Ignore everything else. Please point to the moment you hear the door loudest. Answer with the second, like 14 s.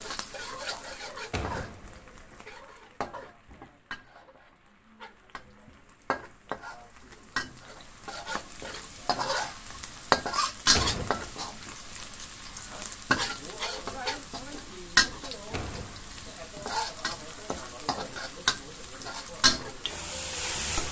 11 s.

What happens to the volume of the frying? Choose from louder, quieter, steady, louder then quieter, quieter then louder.
louder.